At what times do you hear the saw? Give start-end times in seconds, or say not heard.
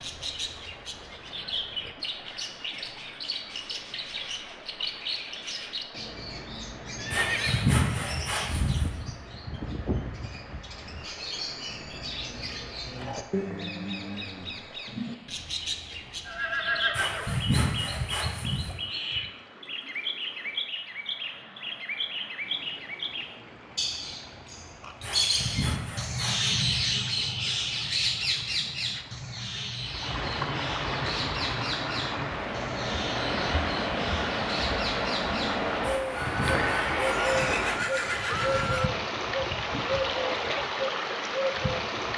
7.1-8.9, 16.9-18.8, 25.0-26.9, 35.8-37.6.